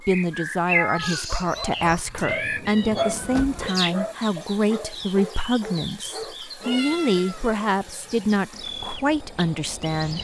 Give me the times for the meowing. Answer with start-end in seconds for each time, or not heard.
0.7-1.3, 6.6-7.7.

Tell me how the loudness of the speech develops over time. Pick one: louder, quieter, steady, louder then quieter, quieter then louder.
steady.